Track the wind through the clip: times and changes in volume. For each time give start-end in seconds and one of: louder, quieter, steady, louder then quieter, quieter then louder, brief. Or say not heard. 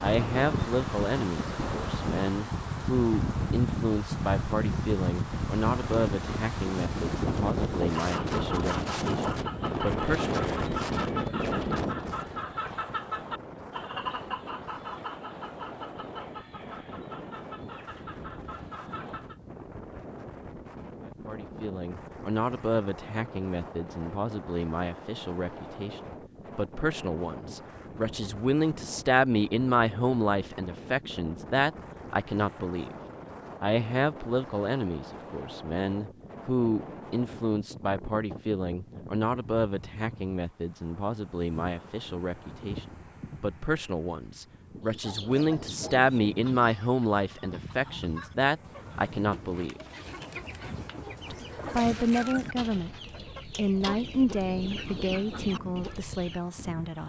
0.0-57.0 quieter.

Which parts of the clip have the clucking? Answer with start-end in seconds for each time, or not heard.
8.0-19.4, 44.9-56.4.